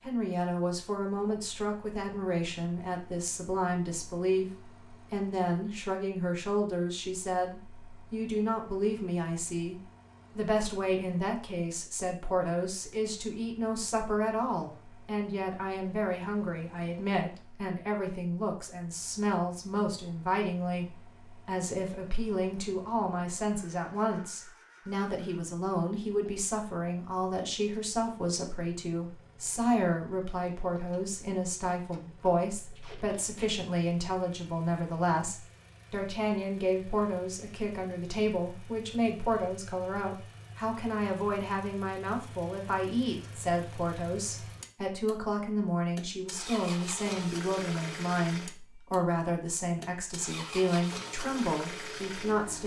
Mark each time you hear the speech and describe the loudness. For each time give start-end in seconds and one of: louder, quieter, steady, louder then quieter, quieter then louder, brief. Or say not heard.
0.0-52.6 steady.